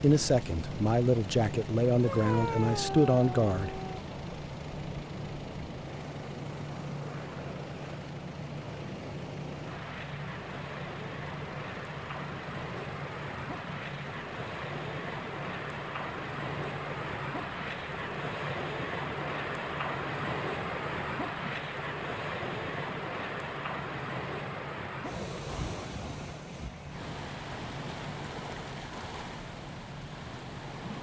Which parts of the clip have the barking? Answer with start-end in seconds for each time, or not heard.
2.0-4.0.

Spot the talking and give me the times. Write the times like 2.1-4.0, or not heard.
0.0-3.8.